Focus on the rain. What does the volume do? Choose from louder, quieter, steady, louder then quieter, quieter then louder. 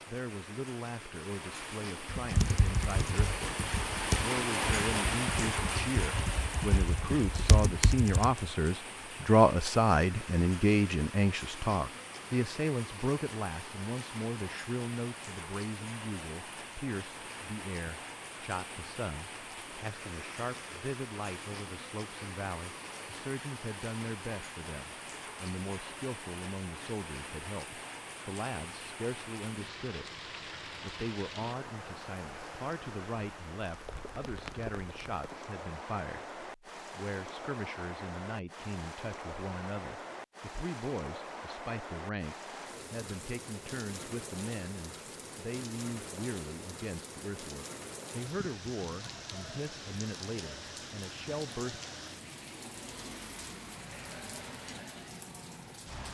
quieter.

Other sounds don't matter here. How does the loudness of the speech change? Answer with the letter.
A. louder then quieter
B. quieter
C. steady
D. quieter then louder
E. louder
B.